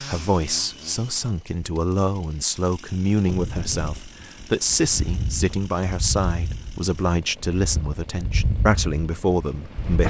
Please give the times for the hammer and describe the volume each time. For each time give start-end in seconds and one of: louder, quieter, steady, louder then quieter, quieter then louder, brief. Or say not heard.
not heard.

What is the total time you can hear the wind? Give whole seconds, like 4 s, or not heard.
7 s.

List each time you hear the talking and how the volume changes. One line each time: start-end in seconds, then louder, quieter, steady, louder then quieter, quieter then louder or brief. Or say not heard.
0.0-10.0 steady.